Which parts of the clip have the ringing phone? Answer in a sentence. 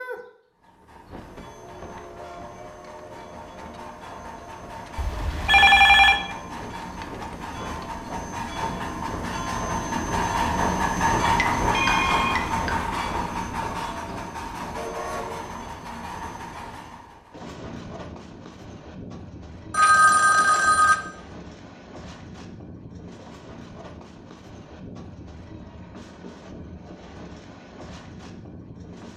You can hear the ringing phone from 5.0 to 6.2 s, from 11.7 to 12.4 s and from 19.7 to 20.9 s.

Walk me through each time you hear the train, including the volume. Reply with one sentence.
The train can be heard from 0.0 to 29.1 s, getting louder then quieter.